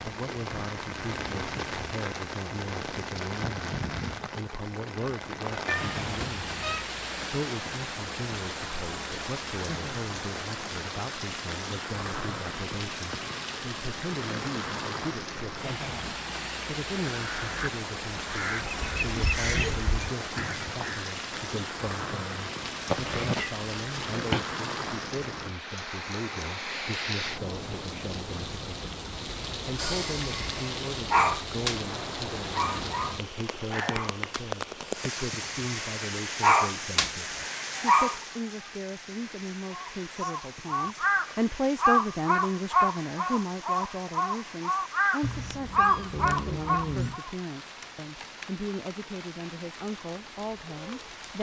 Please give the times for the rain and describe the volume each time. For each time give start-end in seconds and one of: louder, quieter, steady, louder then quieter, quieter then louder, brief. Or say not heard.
0.0-51.3 quieter.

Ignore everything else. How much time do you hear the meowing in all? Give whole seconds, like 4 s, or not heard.
5 s.